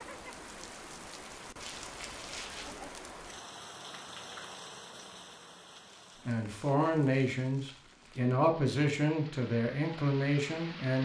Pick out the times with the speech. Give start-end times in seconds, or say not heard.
6.2-10.9.